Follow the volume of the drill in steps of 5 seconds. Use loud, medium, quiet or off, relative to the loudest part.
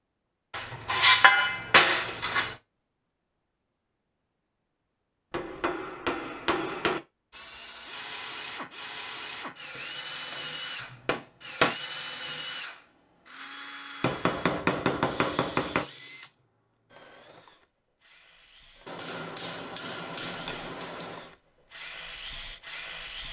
off, loud, loud, medium, loud.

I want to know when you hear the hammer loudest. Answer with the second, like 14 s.
1 s.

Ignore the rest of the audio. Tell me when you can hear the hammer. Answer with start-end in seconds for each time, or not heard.
0.5-2.5, 5.3-7.0, 9.8-11.8, 14.0-15.8, 18.9-21.3.